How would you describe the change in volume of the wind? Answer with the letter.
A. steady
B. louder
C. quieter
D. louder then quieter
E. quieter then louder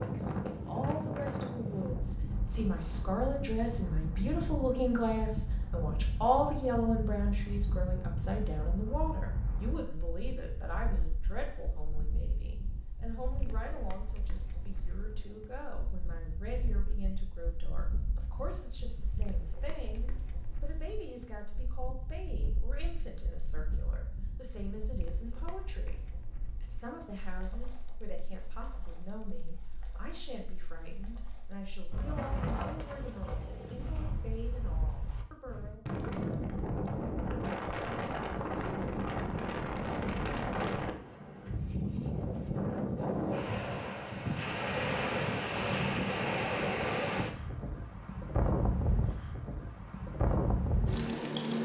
E.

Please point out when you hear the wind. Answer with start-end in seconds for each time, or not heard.
0.0-51.5.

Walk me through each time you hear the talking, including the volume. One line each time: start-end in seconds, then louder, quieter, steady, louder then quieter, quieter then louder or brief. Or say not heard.
0.0-35.9 quieter.